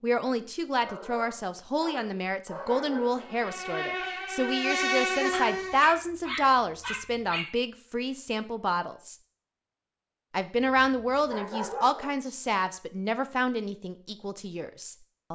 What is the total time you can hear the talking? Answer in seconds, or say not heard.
14 s.